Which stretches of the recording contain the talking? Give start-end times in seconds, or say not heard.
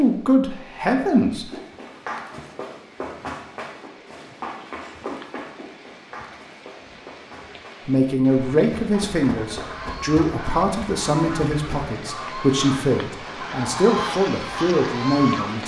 0.0-1.5, 7.8-15.6.